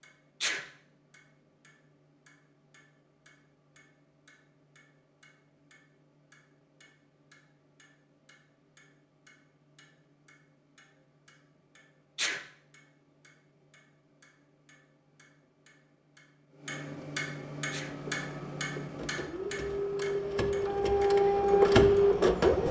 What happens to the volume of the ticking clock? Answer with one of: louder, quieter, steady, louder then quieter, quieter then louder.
louder.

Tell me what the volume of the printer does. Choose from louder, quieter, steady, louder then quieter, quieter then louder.
louder.